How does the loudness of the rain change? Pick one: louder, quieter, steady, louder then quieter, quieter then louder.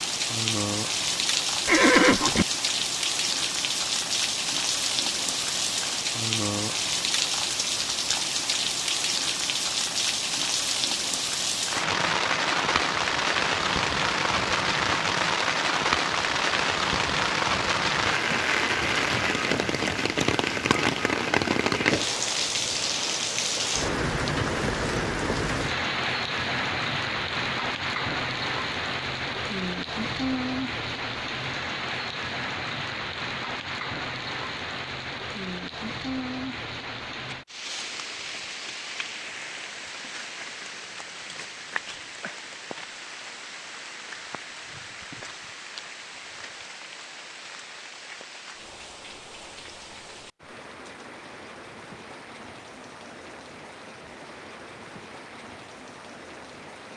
quieter.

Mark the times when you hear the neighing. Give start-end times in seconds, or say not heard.
1.6-2.5.